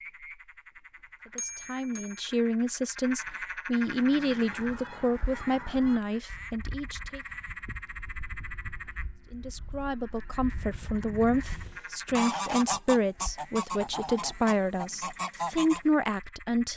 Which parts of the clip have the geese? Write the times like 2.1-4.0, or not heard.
3.8-15.8.